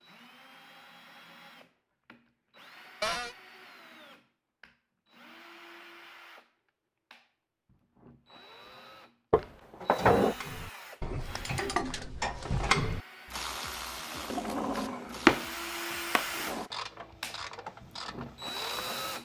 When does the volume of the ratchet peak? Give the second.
13 s.